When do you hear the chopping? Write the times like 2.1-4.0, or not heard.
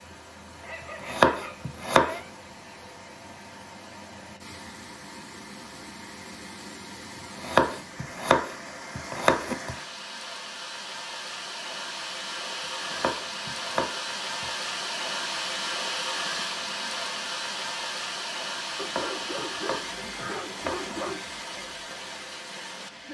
1.1-2.2, 7.4-9.8, 12.8-14.5, 18.8-21.1.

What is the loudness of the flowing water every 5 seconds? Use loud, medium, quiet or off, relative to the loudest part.
quiet, medium, loud, loud, medium.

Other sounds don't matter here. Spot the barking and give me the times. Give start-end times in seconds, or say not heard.
0.6-2.3, 18.8-21.2.